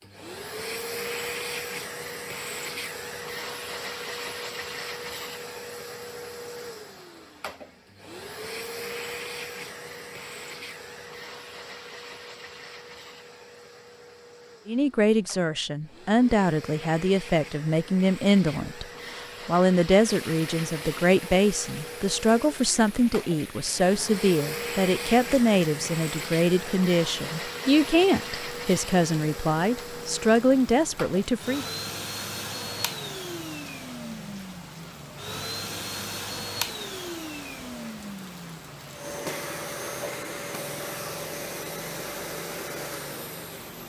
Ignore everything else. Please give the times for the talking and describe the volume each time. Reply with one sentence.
The talking can be heard from 14.7 to 31.6 s, at a steady volume.